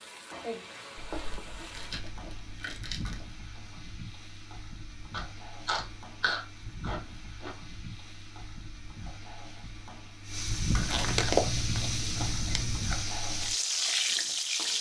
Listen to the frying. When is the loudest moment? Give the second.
14 s.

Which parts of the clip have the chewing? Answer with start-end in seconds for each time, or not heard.
0.9-3.2, 5.1-7.5, 10.7-13.1.